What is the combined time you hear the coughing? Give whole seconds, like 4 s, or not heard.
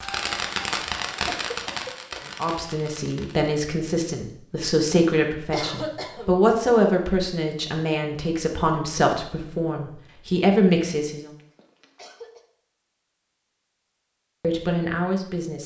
3 s.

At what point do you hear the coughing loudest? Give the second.
6 s.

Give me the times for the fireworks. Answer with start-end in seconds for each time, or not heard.
0.0-3.5.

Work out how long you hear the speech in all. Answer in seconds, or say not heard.
10 s.